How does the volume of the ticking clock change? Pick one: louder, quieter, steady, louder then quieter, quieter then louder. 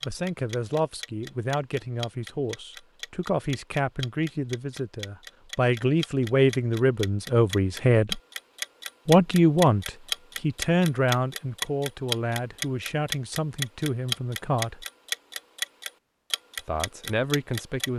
louder.